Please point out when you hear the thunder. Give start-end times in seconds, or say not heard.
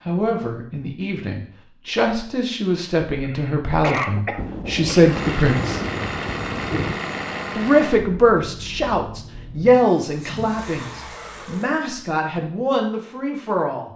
4.3-7.0.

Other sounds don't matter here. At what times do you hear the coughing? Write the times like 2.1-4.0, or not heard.
3.2-5.0.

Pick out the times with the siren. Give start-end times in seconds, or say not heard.
not heard.